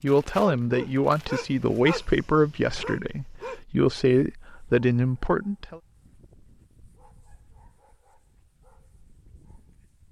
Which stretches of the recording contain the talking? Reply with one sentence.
You can hear the talking from 0.0 to 5.8 s.